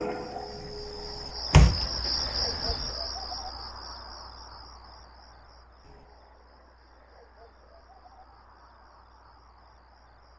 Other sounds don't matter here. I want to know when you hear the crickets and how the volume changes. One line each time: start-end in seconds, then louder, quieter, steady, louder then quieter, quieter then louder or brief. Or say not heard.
0.0-10.3 quieter.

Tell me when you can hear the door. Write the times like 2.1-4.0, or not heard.
1.5-2.9.